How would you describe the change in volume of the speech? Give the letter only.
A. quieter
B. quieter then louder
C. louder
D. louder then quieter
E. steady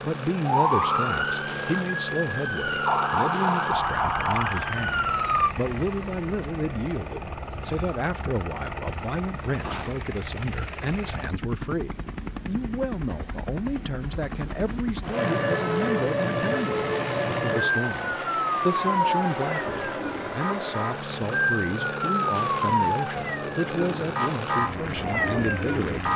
E.